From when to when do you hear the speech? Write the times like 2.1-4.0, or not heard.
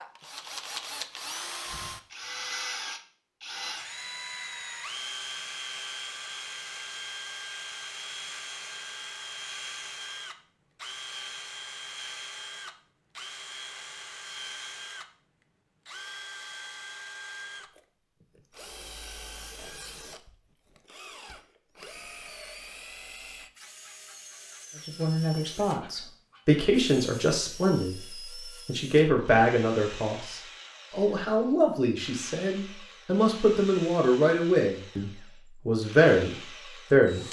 24.9-37.2.